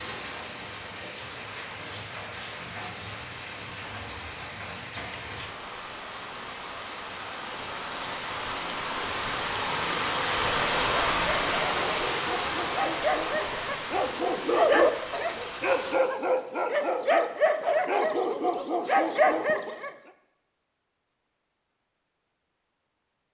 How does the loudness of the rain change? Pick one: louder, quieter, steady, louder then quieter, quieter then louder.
louder then quieter.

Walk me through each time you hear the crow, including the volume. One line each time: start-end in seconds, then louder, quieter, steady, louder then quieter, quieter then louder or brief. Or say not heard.
not heard.